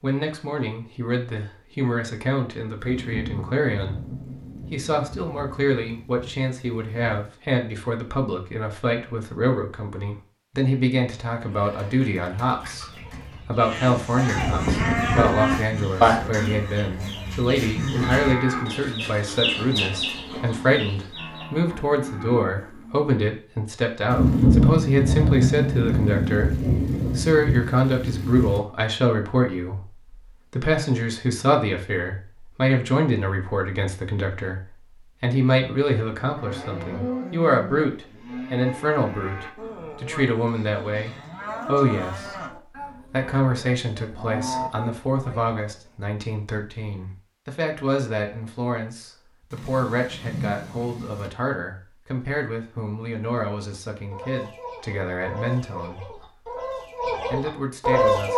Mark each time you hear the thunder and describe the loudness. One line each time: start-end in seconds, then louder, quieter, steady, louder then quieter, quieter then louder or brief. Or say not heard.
2.8-7.3 quieter
24.1-28.6 quieter
49.5-51.3 brief.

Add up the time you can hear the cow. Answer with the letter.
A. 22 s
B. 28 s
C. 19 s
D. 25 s
C.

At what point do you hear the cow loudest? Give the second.
16 s.